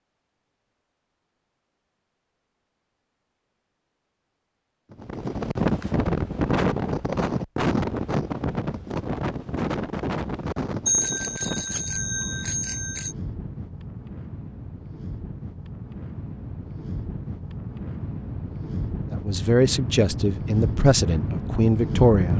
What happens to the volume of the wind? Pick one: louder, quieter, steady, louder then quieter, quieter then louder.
quieter then louder.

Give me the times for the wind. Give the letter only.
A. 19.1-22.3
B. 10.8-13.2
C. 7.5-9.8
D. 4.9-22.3
D.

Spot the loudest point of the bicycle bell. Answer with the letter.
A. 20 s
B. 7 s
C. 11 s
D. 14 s
C.